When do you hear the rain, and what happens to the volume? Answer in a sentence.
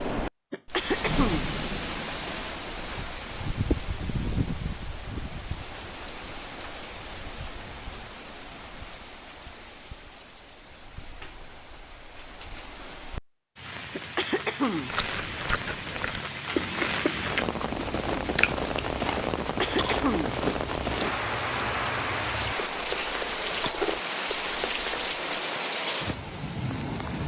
You can hear the rain from 0.0 to 27.2 s, getting quieter then louder.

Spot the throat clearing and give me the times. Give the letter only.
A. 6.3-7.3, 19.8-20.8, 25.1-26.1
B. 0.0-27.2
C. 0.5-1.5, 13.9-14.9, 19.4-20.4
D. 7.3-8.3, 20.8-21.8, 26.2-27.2
C.